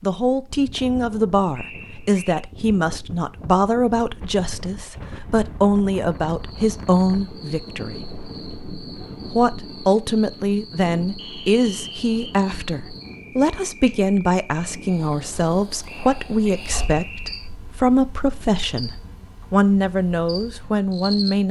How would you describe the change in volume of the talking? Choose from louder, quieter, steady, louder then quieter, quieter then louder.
steady.